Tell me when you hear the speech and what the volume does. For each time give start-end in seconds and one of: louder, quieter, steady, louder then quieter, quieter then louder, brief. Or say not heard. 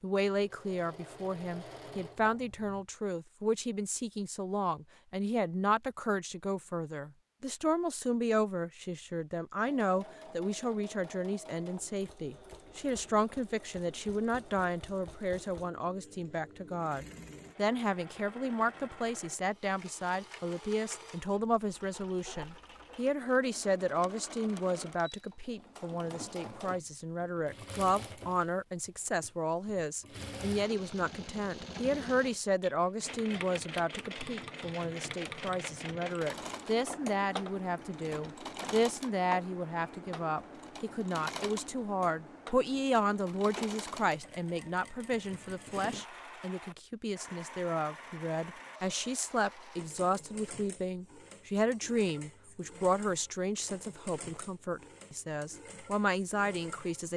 0.0-57.1 steady.